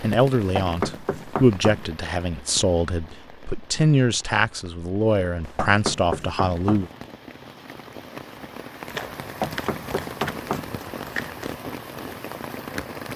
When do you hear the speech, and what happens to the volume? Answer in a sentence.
The speech can be heard from 0.0 to 6.9 s, at a steady volume.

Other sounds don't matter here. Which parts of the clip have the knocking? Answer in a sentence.
The knocking can be heard from 0.4 to 1.9 s, from 5.5 to 6.9 s and from 9.2 to 10.8 s.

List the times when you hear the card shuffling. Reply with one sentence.
The card shuffling can be heard from 8.8 to 11.6 s.